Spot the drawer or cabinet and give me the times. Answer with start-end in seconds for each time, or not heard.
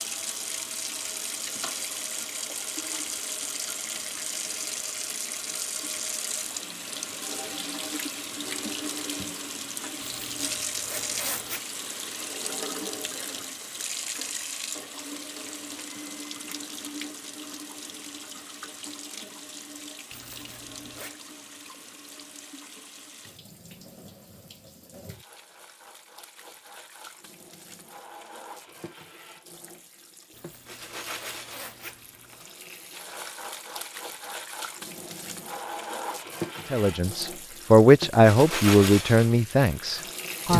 not heard.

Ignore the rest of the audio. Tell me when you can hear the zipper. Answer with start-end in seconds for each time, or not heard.
10.0-11.6, 20.1-21.1, 30.3-32.4.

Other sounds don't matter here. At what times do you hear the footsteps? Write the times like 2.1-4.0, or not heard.
not heard.